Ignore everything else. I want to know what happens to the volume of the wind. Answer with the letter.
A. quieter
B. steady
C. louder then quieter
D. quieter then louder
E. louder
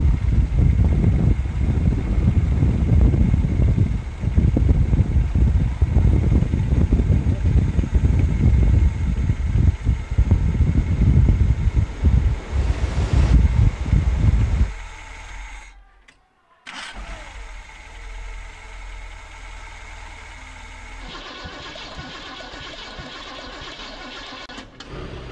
B.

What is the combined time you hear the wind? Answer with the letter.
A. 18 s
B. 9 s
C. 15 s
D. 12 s
C.